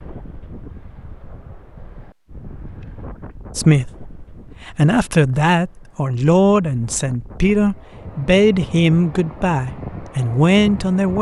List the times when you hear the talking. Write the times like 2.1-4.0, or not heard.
3.5-11.1.